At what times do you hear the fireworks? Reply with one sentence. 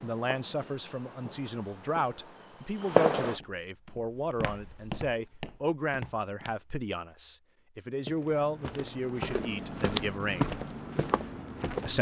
You can hear the fireworks from 0.0 to 3.4 s.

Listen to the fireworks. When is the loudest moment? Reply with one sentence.
The loudest moment of the fireworks is at 3 seconds.